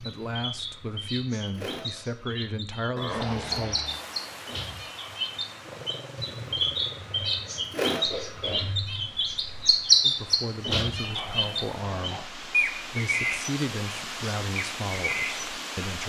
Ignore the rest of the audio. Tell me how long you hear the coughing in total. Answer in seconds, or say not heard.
2 s.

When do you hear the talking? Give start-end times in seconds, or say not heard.
0.0-3.9, 10.0-16.0.